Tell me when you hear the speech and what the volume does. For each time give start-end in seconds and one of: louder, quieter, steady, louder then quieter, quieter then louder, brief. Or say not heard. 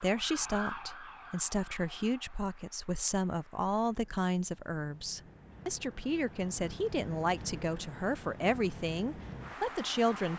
0.0-10.3 steady.